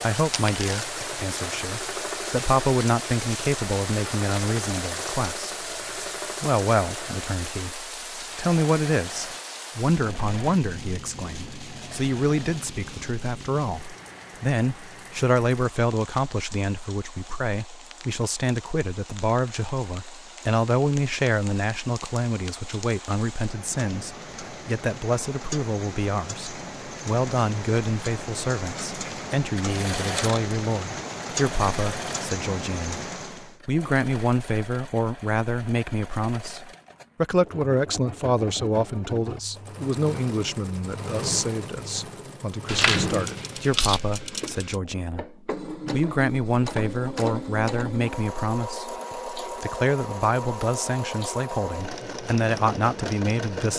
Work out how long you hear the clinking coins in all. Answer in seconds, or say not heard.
3 s.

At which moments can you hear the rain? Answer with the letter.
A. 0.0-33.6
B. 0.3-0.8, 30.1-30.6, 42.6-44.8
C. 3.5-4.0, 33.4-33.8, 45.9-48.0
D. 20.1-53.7
A.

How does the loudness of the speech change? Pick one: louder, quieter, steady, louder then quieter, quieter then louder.
steady.